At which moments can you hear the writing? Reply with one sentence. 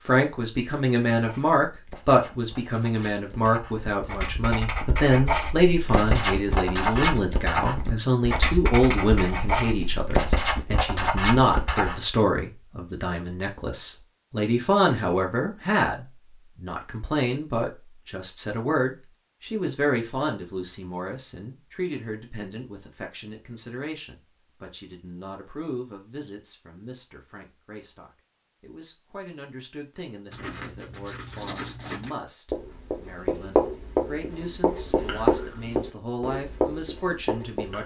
The writing can be heard from 1.1 to 12.0 s and from 30.3 to 37.8 s.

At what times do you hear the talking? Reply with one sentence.
The talking can be heard from 0.1 to 37.8 s.